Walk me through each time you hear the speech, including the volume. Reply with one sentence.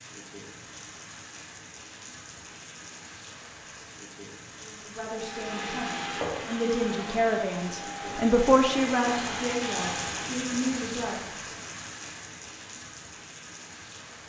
You can hear the speech from 4.6 to 11.3 s, getting louder then quieter.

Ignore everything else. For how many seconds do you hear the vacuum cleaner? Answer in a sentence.
You can hear the vacuum cleaner for 5 seconds altogether.